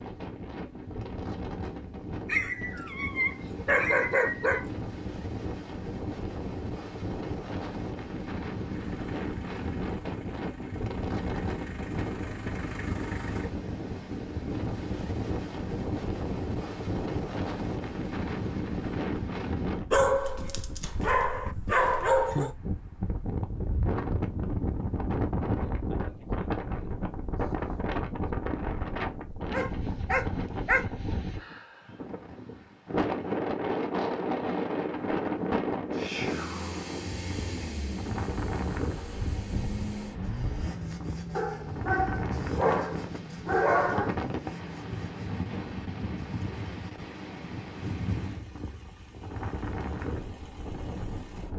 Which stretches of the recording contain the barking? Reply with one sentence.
The barking can be heard from 2.2 to 4.7 s, from 19.9 to 22.6 s, from 29.5 to 30.9 s and from 41.4 to 44.1 s.